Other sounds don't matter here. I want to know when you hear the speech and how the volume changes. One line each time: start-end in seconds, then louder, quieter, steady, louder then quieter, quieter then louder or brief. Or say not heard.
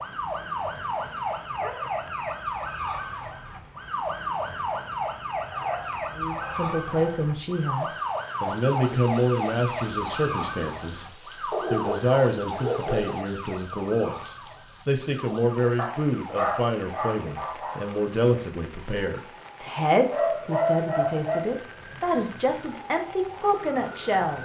6.2-24.4 steady.